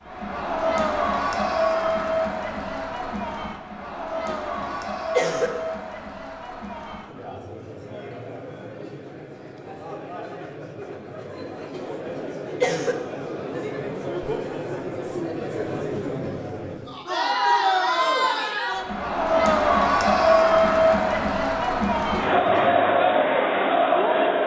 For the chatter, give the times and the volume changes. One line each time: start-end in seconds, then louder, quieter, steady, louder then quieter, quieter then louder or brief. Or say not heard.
0.0-24.4 quieter then louder.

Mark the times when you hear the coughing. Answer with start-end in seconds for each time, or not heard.
4.2-5.5, 11.7-12.9, 22.1-22.8.